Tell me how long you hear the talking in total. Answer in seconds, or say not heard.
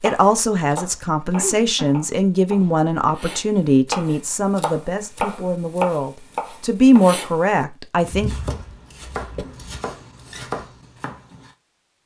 8 s.